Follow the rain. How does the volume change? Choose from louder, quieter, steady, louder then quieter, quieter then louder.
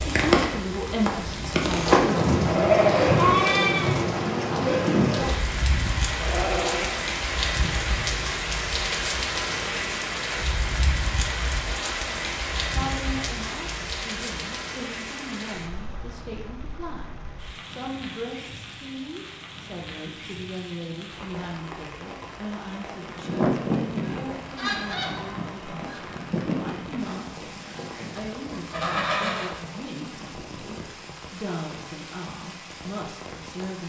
quieter.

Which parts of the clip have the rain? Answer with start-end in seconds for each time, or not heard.
0.0-33.8.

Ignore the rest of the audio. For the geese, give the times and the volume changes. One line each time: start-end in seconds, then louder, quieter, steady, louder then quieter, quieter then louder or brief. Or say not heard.
23.1-29.5 quieter then louder.